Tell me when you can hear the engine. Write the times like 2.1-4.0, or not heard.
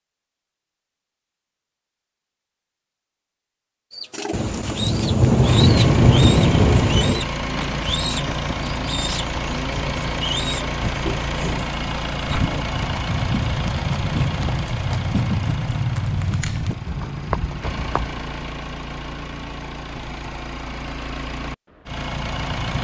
5.5-22.7.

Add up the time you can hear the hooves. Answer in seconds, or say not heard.
6 s.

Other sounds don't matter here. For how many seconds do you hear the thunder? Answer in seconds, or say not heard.
3 s.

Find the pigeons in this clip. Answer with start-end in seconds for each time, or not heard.
3.9-12.7.